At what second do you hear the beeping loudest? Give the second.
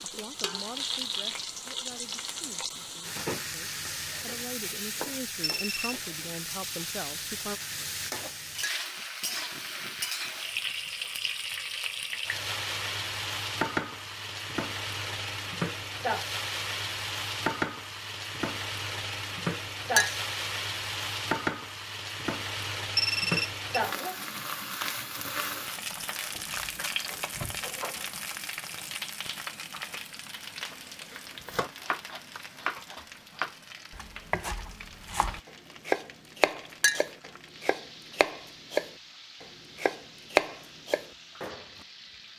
23 s.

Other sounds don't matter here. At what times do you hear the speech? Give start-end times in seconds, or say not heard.
0.0-7.6.